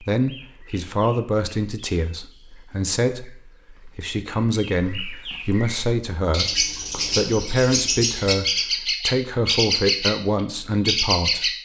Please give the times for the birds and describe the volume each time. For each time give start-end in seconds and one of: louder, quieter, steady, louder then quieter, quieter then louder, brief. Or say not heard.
0.1-11.5 louder.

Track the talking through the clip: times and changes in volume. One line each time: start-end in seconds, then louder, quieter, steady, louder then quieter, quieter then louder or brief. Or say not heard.
0.0-11.5 steady.